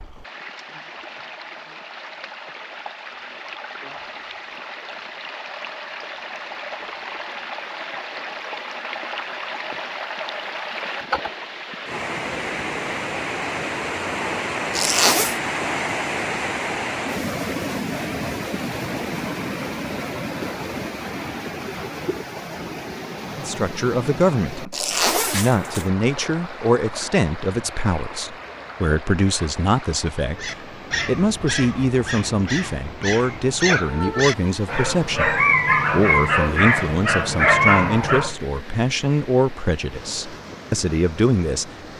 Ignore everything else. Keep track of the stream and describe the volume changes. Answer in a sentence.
The volume of the stream goes up, then down.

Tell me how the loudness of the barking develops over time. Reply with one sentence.
The loudness of the barking goes up.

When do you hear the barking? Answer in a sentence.
The barking can be heard from 30.4 to 38.4 s.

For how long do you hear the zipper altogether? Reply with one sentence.
The zipper can be heard for 2 seconds in total.